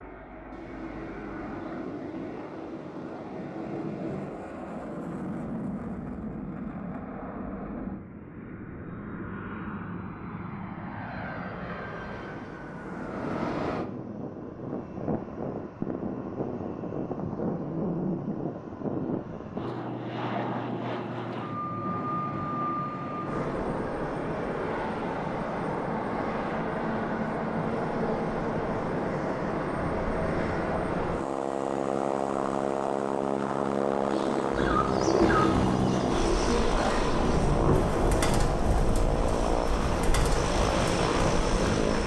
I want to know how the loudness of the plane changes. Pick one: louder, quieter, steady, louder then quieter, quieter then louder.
louder.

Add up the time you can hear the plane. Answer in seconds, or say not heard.
42 s.